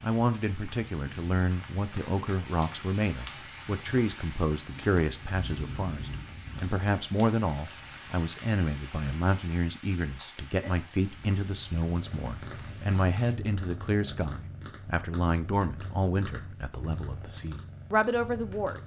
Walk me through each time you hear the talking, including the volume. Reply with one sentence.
The talking can be heard from 0.0 to 18.8 s, at a steady volume.